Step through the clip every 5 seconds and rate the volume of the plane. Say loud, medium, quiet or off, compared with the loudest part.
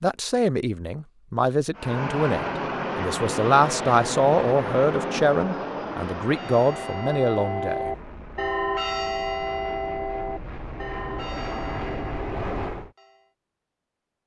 loud, medium, medium.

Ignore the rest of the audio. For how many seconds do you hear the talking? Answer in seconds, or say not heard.
8 s.